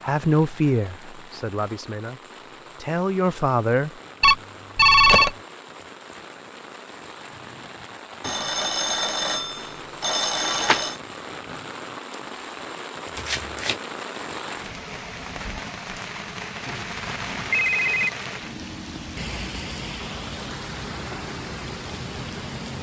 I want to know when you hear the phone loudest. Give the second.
5 s.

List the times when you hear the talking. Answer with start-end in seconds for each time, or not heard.
0.0-3.9.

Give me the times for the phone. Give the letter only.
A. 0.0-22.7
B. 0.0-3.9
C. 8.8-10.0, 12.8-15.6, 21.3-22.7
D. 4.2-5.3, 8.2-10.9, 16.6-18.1
D.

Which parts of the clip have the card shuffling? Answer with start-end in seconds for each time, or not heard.
13.2-13.8.